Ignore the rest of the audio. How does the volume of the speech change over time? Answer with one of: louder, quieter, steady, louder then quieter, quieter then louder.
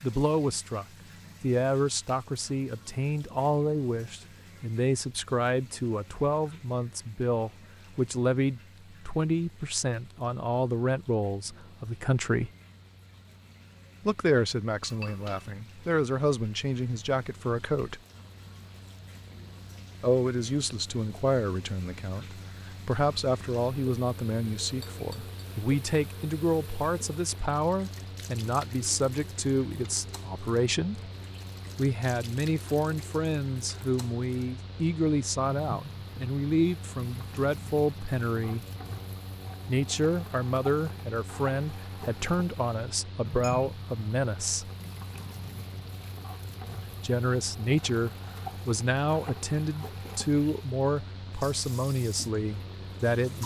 steady.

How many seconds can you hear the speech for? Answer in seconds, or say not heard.
46 s.